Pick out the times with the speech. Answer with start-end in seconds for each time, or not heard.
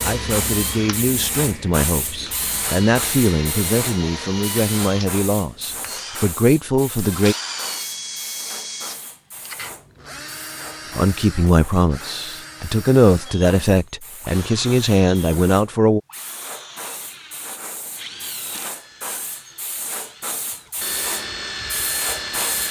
0.0-7.3, 10.9-16.0.